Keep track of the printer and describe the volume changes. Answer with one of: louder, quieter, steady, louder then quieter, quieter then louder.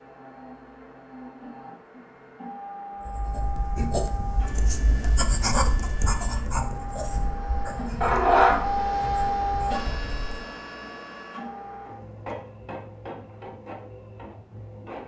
louder then quieter.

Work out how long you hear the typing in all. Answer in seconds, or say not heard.
not heard.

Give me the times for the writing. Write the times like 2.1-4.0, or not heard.
3.0-10.6.